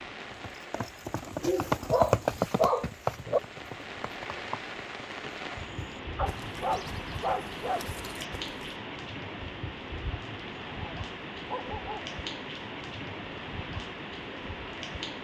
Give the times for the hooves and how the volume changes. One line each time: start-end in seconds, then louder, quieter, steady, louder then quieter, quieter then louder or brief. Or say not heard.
0.3-8.8 quieter.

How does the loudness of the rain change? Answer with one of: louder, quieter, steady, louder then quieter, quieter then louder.
louder.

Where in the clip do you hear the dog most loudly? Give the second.
3 s.